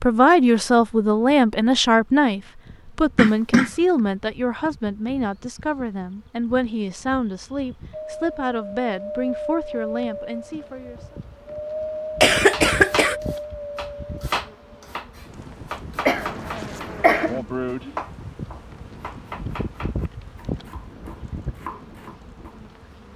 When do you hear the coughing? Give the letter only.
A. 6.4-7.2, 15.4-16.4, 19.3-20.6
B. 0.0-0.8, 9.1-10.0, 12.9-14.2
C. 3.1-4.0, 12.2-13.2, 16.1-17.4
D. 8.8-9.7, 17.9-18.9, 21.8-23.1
C.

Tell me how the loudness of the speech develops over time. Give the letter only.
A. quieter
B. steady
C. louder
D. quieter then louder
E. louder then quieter
A.